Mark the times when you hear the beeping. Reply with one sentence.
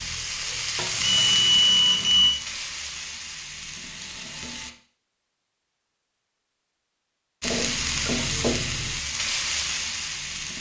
The beeping can be heard from 1.0 to 2.4 s.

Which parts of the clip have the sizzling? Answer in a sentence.
You can hear the sizzling from 0.0 to 4.8 s and from 7.4 to 10.5 s.